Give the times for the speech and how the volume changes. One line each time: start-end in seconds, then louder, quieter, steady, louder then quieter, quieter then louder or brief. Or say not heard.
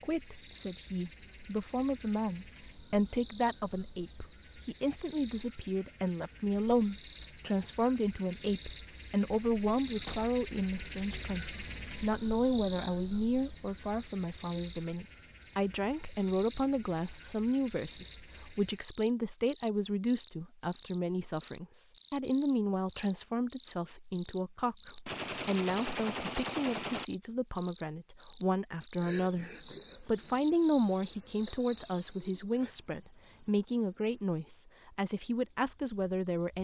0.0-36.5 steady.